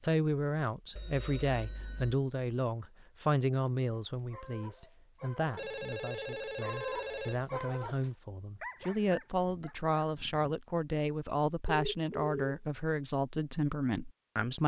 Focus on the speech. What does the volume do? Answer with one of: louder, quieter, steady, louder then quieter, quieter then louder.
quieter then louder.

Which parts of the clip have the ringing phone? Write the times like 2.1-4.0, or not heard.
0.9-2.1, 5.5-7.5, 11.7-12.6.